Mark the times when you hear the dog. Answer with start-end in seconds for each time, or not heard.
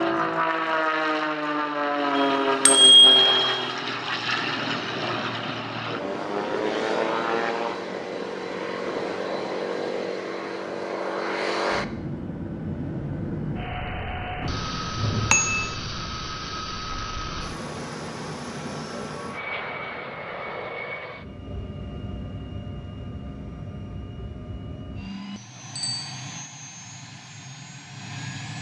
not heard.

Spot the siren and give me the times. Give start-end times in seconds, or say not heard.
not heard.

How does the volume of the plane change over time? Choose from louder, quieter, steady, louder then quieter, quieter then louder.
quieter.